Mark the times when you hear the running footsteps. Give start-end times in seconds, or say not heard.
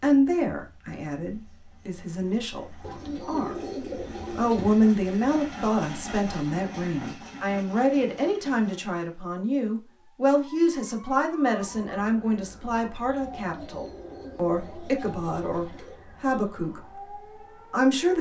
not heard.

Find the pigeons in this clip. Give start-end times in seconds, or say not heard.
2.8-4.8, 13.3-16.1.